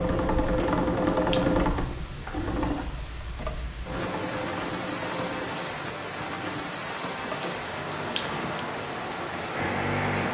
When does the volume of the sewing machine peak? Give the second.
1 s.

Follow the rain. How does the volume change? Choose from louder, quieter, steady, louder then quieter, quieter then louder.
louder.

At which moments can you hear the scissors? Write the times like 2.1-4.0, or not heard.
0.6-1.4, 7.4-8.7.